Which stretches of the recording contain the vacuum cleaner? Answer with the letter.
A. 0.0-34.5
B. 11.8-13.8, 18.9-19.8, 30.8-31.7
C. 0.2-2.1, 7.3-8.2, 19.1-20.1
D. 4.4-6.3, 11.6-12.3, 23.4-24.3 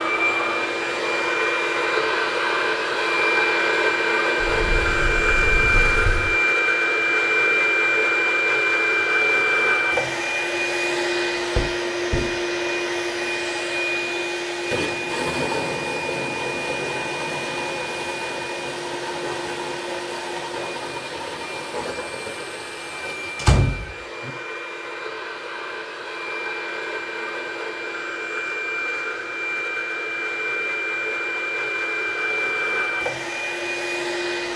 A.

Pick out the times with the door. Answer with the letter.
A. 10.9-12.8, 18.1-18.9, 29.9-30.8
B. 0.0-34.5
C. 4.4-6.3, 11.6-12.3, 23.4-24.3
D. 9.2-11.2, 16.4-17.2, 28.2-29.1
C.